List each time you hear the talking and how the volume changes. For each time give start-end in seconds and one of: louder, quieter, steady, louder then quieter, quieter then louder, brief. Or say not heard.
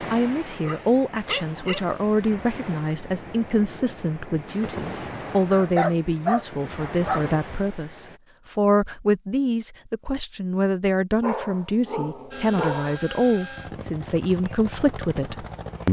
0.1-15.8 steady.